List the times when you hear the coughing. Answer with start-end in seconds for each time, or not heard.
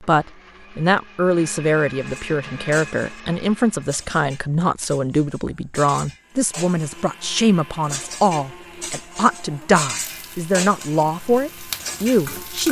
not heard.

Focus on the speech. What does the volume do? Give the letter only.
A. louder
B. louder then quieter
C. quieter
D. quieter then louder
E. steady
E.